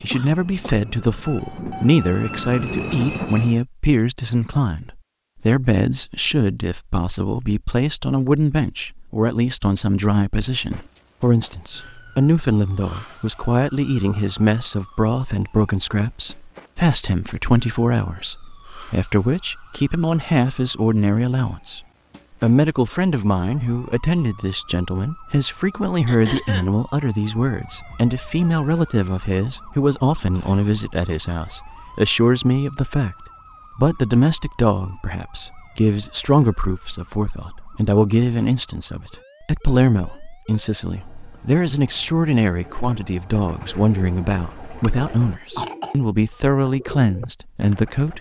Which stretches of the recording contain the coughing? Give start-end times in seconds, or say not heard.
0.1-0.8, 26.1-26.7, 44.9-46.0.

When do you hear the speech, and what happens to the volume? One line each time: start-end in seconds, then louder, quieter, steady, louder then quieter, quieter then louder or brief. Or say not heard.
0.0-21.8 steady
22.4-48.1 steady.